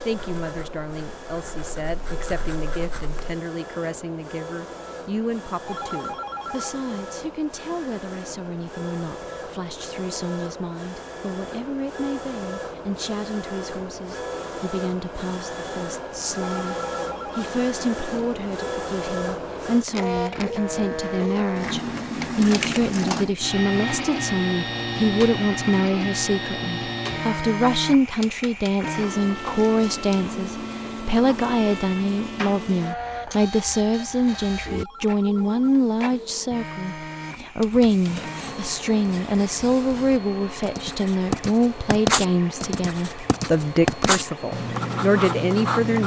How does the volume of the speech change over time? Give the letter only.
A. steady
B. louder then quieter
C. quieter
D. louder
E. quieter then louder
D.